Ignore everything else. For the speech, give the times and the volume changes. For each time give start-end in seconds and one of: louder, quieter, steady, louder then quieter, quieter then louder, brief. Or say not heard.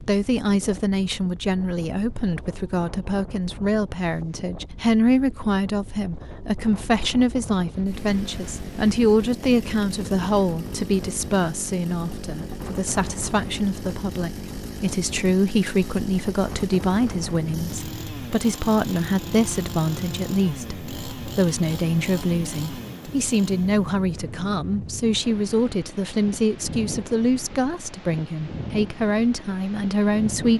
0.0-30.5 steady.